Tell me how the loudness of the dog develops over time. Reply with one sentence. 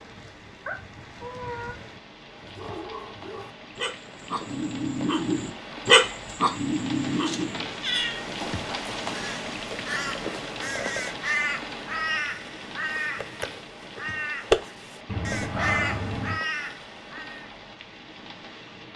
The loudness of the dog goes up, then down.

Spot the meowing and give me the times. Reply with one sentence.
The meowing can be heard from 0.7 to 1.8 s, from 7.2 to 8.2 s and from 15.1 to 16.4 s.